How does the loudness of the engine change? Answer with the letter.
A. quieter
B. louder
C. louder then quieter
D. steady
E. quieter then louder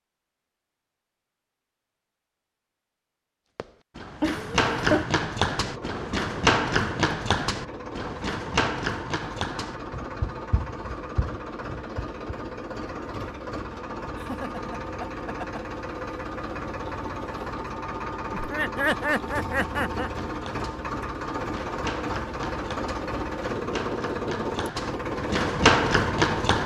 B.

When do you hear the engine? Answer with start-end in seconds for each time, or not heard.
5.5-26.6.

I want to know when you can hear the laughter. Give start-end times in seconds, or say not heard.
4.2-5.0, 14.2-15.6, 18.3-20.1.